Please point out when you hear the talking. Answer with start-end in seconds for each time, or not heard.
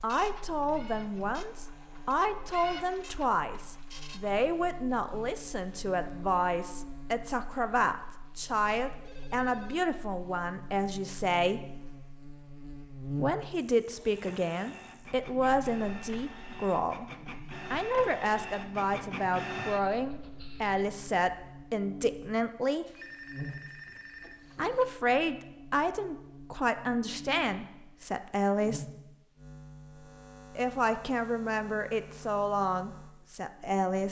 0.0-11.6, 13.2-17.1, 17.7-22.9, 24.6-28.9, 30.6-34.0.